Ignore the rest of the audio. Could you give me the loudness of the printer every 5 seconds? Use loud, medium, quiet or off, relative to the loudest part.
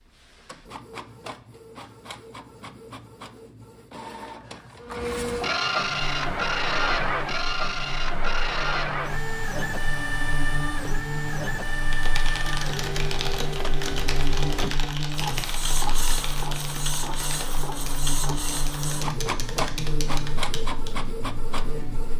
quiet, loud, medium, medium, medium.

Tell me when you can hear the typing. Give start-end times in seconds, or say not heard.
11.7-20.9.